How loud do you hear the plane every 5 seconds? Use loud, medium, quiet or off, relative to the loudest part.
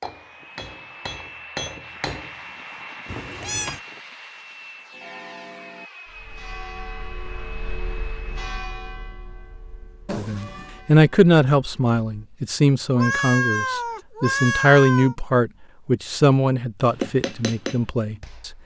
loud, loud, off, off.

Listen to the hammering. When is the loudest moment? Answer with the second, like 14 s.
17 s.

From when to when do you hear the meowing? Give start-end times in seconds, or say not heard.
3.0-3.8, 10.1-10.8, 12.9-15.2.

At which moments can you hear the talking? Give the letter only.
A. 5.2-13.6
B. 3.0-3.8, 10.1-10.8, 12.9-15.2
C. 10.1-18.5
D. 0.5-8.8
C.